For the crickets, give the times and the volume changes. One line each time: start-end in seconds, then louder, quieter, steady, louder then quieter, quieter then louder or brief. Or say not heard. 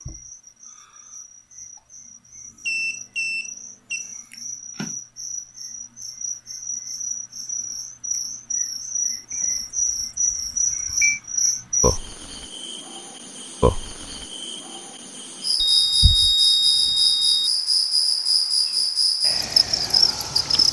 0.0-20.6 louder.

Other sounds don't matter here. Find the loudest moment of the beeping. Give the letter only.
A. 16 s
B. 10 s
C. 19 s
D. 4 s
A.